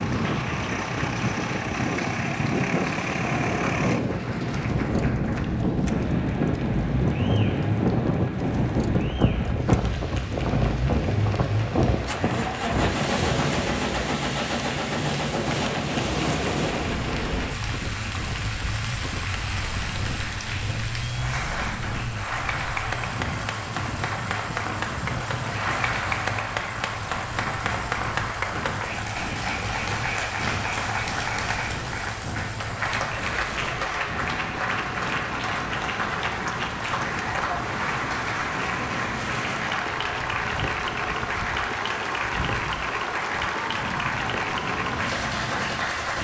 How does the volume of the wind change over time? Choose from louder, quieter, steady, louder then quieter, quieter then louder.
quieter.